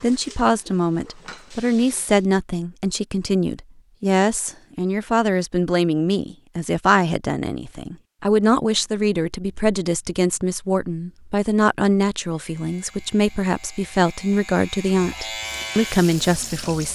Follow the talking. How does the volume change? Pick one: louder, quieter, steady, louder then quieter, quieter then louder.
steady.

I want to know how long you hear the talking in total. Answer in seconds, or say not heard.
17 s.